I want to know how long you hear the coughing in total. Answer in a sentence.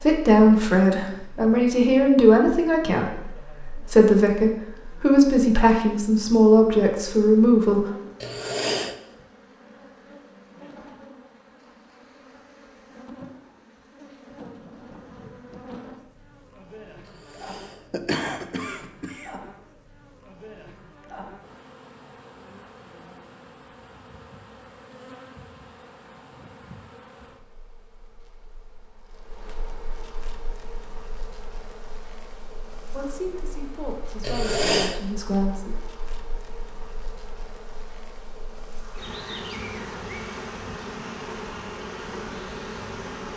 The coughing can be heard for 4 seconds in total.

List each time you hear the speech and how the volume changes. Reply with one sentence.
You can hear the speech from 0.0 to 7.8 s, at a steady volume; and briefly from 32.9 to 35.8 s.